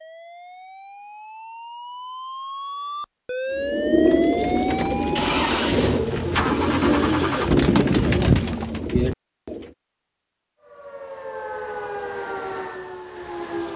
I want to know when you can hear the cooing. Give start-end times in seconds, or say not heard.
3.5-9.7.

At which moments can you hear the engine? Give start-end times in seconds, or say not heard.
5.0-7.5.